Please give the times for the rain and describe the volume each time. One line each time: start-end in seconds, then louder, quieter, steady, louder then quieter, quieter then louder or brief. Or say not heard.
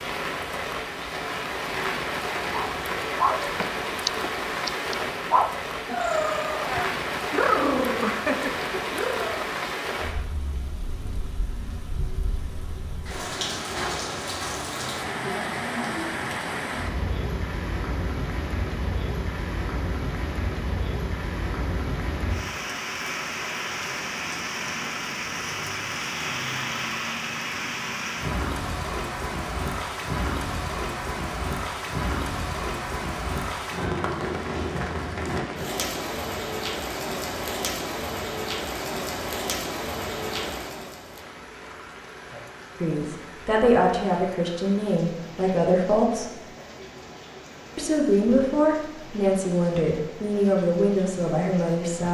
0.0-52.0 quieter.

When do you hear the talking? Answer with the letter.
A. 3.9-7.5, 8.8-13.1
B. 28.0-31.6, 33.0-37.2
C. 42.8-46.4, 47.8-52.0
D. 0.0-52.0
C.